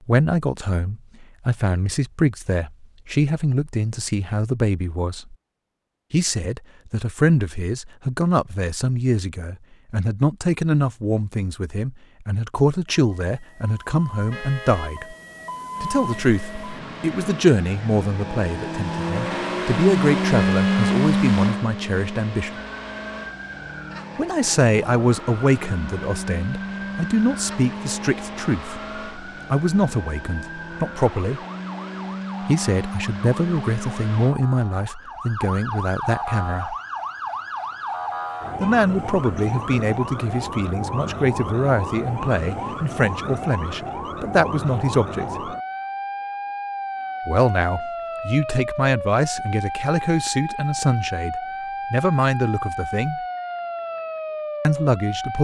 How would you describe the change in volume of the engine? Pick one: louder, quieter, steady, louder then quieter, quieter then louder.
louder then quieter.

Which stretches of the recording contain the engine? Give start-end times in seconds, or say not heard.
15.7-34.4.